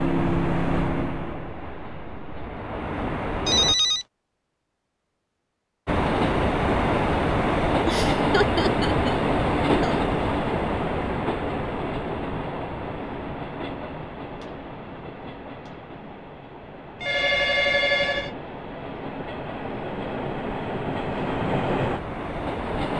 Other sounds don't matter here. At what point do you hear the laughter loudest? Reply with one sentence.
The loudest moment of the laughter is at 9 seconds.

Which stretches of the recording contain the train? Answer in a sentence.
You can hear the train from 0.0 to 3.8 s and from 5.8 to 22.9 s.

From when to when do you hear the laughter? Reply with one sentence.
You can hear the laughter from 7.8 to 10.0 s.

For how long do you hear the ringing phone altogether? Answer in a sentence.
The ringing phone can be heard for 2 seconds in total.